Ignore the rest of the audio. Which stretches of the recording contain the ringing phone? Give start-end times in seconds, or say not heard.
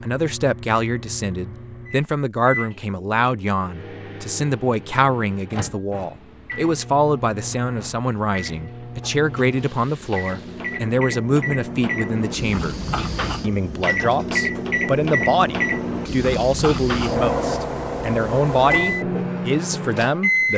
not heard.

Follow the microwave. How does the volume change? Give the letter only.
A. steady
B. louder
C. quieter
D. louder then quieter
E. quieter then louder
B.